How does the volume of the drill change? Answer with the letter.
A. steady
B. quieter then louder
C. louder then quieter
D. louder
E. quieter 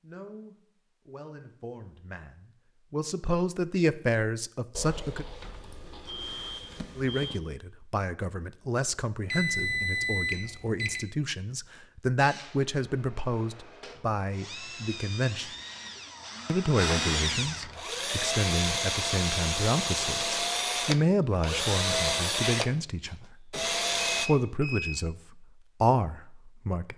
D.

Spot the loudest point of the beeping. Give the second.
10 s.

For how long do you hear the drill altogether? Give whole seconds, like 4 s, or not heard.
12 s.